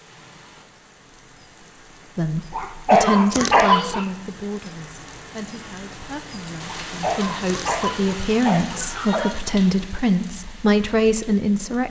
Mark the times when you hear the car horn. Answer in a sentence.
The car horn can't be heard in this clip.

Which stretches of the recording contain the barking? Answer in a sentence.
You can hear the barking from 2.5 to 4.0 s and from 6.7 to 9.4 s.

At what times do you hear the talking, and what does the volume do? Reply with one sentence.
You can hear the talking from 2.1 to 11.8 s, getting quieter then louder.